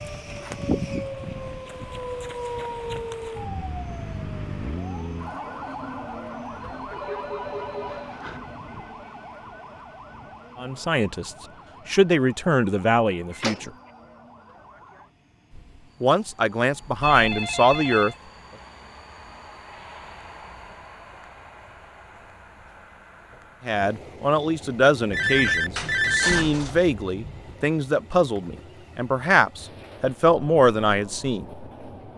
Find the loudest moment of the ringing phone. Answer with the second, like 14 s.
26 s.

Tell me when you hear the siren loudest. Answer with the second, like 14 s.
1 s.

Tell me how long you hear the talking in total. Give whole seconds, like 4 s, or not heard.
13 s.